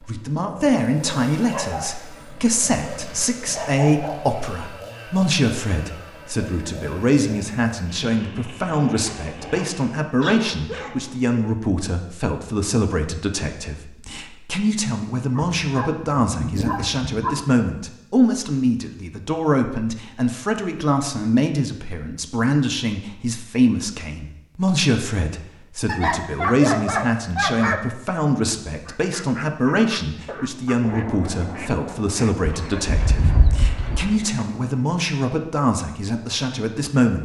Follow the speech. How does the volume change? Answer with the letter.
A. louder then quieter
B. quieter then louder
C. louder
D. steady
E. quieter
D.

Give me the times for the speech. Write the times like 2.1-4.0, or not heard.
0.0-37.1.